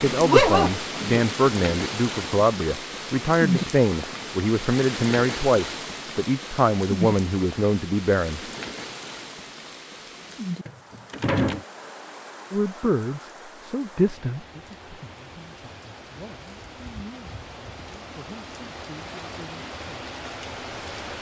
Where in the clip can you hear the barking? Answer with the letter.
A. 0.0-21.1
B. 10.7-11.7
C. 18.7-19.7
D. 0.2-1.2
D.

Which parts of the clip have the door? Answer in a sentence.
The door can be heard from 10.7 to 11.7 s.